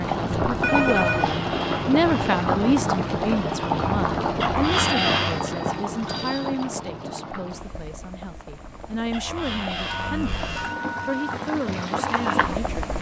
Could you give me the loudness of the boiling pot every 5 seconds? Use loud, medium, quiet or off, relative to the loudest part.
loud, medium, medium.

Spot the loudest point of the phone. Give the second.
1 s.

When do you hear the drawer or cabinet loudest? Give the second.
5 s.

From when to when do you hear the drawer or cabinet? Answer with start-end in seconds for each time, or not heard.
1.1-2.5, 4.4-5.4, 9.1-10.8.